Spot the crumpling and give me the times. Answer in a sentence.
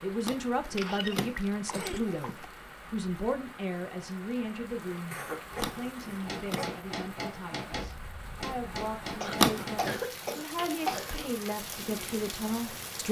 You can hear the crumpling from 0.2 to 2.5 s, from 5.6 to 6.7 s and from 9.3 to 9.9 s.